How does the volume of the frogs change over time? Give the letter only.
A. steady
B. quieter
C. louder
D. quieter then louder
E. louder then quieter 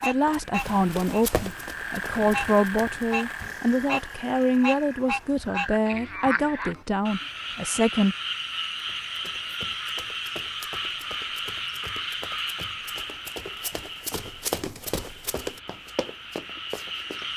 B.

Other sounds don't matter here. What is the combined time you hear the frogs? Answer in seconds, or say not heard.
17 s.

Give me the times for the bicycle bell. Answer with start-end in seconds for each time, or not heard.
not heard.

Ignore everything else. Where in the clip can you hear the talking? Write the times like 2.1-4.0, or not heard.
0.0-8.2.